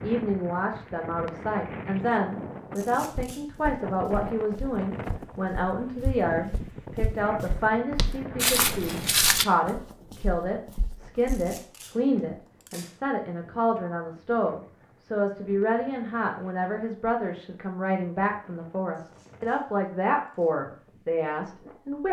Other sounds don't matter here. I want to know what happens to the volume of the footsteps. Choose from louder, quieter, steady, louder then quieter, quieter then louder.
louder then quieter.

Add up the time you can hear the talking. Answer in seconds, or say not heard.
22 s.